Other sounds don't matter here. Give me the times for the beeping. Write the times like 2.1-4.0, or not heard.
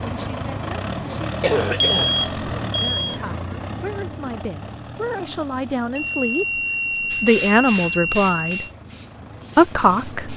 1.8-3.2, 6.0-8.7.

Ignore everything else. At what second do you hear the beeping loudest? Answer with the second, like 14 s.
2 s.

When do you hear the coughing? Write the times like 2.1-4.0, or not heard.
1.4-2.1.